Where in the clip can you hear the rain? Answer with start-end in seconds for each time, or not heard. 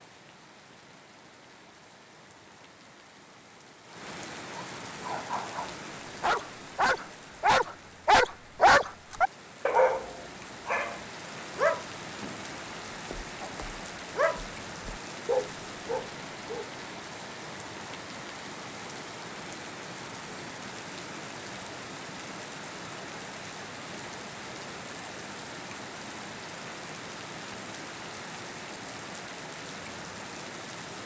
0.0-31.0.